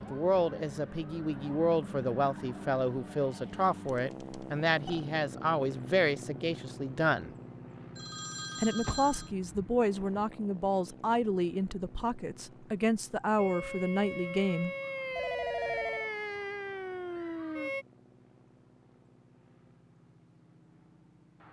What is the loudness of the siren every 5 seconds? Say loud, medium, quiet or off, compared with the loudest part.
quiet, off, loud, loud, off.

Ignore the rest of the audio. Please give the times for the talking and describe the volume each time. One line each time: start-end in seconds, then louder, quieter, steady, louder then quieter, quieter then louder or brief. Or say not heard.
0.0-7.3 steady
8.6-14.8 steady.